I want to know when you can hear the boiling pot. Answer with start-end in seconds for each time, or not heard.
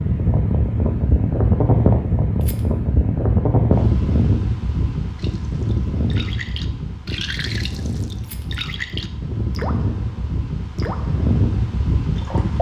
not heard.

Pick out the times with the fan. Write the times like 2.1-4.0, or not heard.
0.0-12.5.